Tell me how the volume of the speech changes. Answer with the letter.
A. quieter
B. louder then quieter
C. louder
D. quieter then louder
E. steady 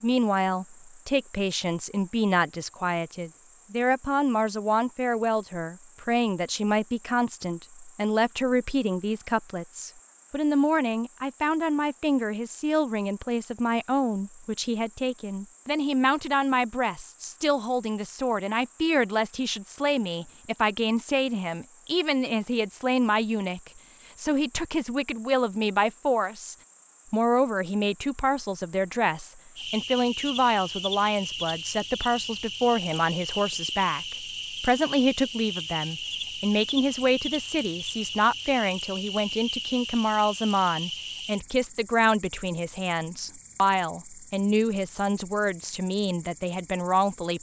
E.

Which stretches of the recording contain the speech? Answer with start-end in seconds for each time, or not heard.
0.0-47.3.